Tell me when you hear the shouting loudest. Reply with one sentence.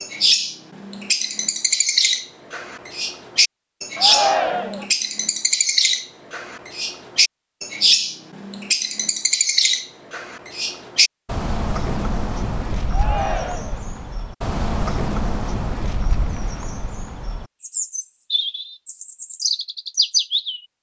The loudest moment of the shouting is at 4 seconds.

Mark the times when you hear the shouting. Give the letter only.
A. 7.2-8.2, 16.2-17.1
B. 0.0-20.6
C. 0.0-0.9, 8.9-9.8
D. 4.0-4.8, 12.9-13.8
D.